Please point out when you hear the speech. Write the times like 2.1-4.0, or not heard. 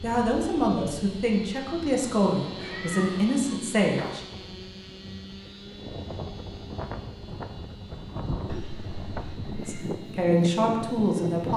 0.0-4.2, 9.6-11.5.